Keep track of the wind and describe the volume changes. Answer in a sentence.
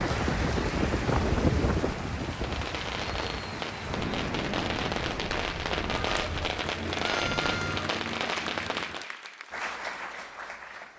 The loudness of the wind goes down.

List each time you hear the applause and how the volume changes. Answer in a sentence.
The applause can be heard from 0.0 to 10.9 s, at a steady volume.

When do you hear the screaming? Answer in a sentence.
The screaming can be heard from 7.0 to 7.8 s.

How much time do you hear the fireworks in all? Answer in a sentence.
You can hear the fireworks for 7 seconds altogether.